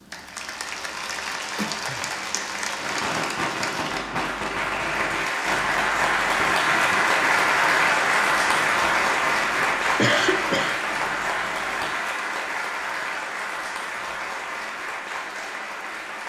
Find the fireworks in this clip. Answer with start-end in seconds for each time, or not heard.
2.8-11.9.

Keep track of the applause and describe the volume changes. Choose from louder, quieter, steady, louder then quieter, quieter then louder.
louder then quieter.